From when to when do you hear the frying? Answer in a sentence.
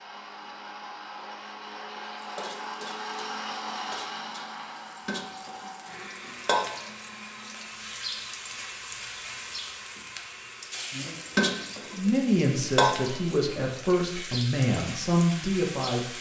The frying can be heard from 2.1 to 16.1 s.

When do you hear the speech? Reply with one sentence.
You can hear the speech from 11.9 to 16.1 s.